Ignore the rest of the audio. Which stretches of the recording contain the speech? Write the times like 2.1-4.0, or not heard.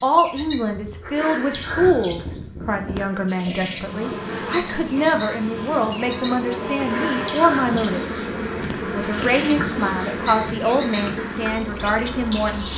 0.0-12.7.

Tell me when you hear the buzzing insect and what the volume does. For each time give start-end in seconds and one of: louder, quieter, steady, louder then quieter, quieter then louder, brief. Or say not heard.
0.2-12.7 louder.